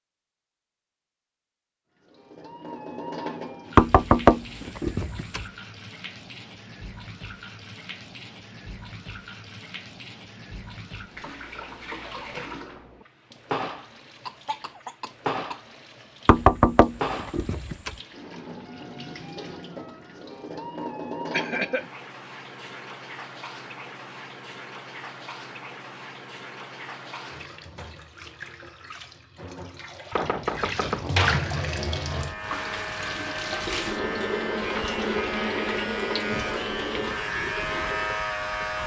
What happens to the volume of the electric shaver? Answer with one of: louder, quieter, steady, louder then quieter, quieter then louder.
louder.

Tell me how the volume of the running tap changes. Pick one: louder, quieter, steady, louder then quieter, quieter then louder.
louder.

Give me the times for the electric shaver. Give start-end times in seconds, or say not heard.
31.4-38.8.